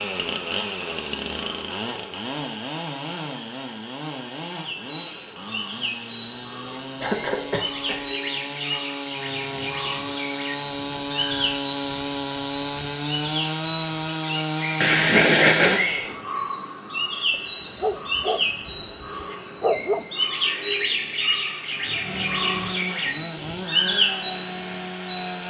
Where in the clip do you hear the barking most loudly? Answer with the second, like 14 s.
20 s.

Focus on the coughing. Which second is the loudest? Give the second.
15 s.